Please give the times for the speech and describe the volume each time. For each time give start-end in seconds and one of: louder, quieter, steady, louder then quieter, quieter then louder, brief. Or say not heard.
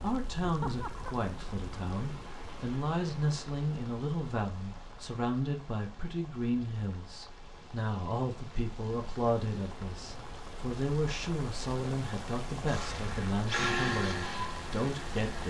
0.0-15.4 steady.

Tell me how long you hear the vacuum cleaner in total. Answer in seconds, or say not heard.
3 s.